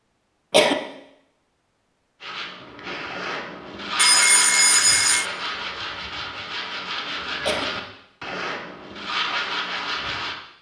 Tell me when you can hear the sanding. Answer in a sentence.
You can hear the sanding from 2.2 to 10.3 s.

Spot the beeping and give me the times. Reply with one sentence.
You can hear the beeping from 4.0 to 5.2 s.